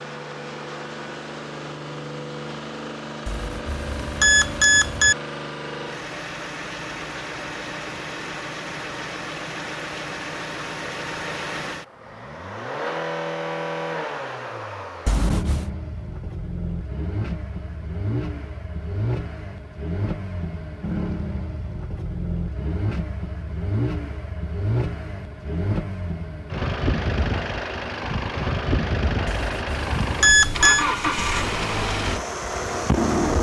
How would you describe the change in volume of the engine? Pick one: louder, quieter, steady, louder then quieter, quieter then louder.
louder.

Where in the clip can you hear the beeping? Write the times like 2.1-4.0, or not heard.
3.2-5.2, 15.1-15.7, 29.2-30.9.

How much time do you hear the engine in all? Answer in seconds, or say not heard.
33 s.